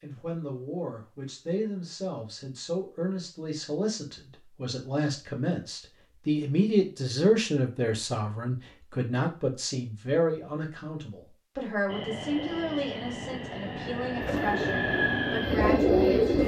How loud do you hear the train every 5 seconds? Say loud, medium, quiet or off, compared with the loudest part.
off, off, loud, loud.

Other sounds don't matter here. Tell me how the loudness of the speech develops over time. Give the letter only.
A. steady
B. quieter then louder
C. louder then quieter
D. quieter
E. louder
C.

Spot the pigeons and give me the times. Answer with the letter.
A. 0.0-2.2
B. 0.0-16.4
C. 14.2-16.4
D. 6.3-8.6
C.